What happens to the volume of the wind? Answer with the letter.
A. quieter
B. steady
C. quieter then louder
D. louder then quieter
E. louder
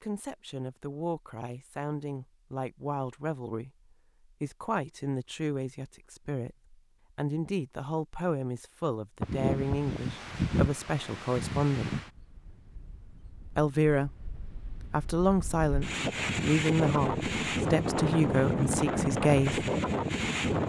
C.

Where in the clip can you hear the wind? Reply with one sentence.
You can hear the wind from 9.2 to 20.6 s.